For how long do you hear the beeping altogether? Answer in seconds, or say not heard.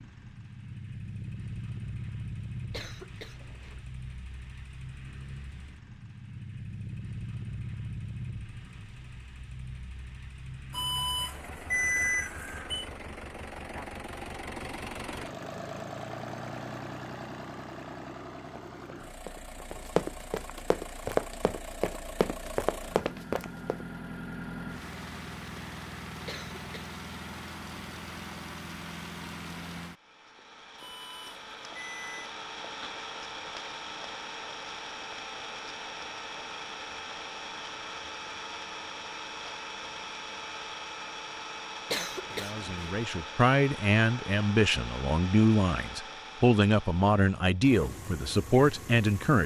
4 s.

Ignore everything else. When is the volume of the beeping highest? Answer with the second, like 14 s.
12 s.